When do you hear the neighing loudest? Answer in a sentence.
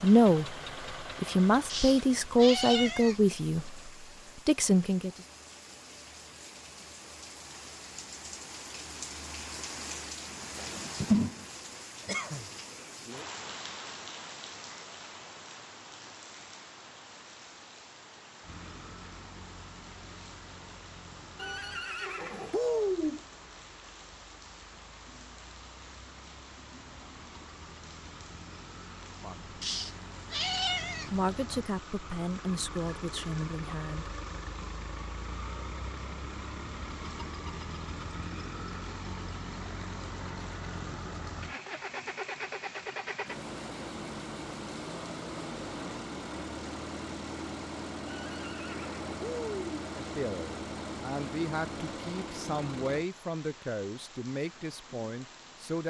The volume of the neighing peaks at 23 seconds.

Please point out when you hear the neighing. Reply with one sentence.
You can hear the neighing from 21.4 to 23.2 s and from 48.0 to 49.9 s.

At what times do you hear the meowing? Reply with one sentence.
You can hear the meowing from 1.6 to 3.3 s and from 29.6 to 31.2 s.